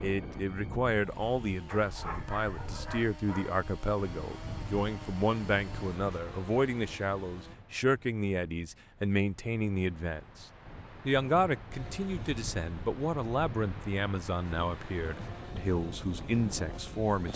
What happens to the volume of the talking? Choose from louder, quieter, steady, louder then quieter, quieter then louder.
steady.